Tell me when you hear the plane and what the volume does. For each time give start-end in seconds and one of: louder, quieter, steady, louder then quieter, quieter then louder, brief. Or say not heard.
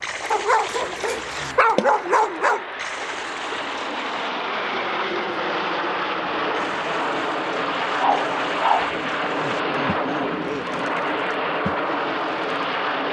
0.0-13.0 louder.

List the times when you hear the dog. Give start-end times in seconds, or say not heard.
0.3-2.6, 7.8-8.9.